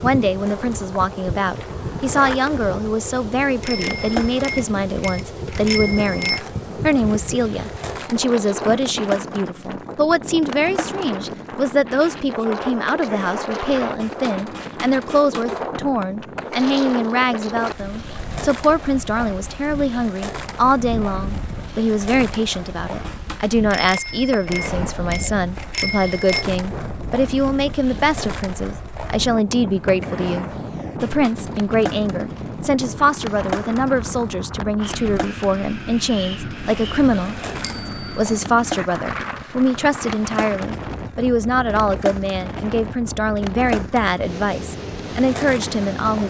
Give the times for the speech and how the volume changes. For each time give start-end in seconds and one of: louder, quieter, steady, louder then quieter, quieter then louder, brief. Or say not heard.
0.0-46.2 steady.